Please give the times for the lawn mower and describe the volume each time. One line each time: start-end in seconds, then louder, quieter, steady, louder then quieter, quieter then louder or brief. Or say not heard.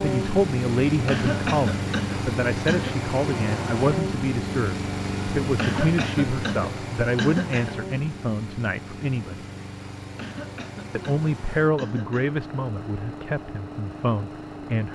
0.0-14.9 quieter.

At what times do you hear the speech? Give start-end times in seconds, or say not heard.
0.0-9.4, 10.9-14.9.